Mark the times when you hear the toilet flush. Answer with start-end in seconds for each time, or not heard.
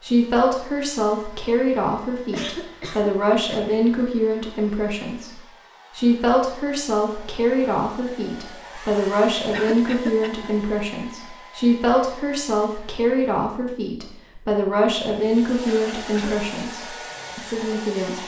not heard.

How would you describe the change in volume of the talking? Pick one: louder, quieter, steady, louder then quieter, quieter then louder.
steady.